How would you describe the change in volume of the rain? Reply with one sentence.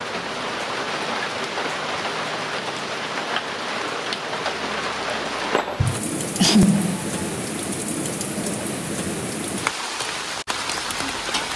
The loudness of the rain stays about the same.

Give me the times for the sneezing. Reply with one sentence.
The sneezing can be heard from 5.8 to 7.1 s.